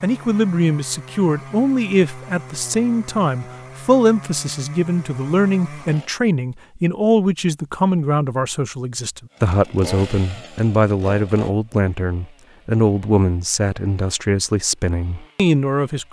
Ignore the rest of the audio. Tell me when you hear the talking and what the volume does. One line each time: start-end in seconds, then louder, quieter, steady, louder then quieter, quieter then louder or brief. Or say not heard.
0.0-16.0 steady.